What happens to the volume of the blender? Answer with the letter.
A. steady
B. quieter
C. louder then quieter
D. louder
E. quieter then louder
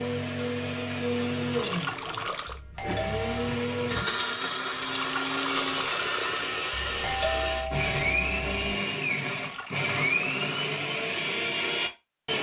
A.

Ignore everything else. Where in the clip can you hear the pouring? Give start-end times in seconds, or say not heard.
1.5-2.6, 4.8-6.5, 9.2-10.7.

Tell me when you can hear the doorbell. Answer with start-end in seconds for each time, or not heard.
2.5-3.5, 6.7-8.5.